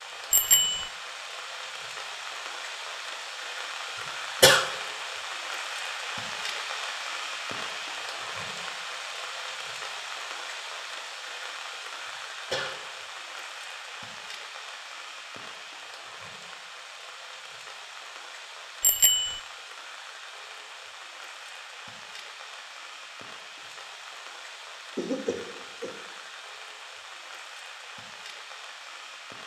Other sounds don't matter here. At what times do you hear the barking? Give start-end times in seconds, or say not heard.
not heard.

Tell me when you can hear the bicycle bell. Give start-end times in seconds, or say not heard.
0.3-0.9, 18.8-19.4.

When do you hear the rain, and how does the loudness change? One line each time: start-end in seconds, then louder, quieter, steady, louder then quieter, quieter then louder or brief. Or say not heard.
0.0-29.4 quieter.